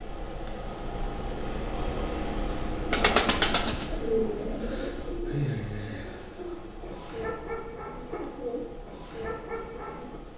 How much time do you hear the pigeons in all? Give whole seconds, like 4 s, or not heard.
7 s.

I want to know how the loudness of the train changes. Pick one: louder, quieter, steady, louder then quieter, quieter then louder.
quieter.